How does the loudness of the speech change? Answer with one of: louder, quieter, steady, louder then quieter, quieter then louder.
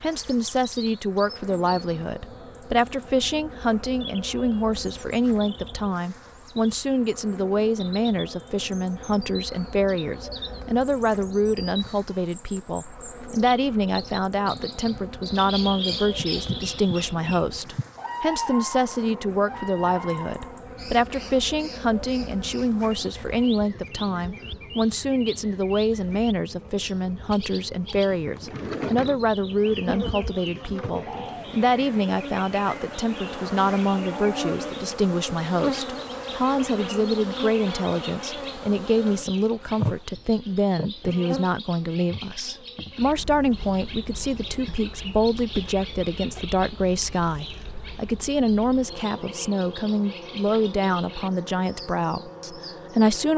steady.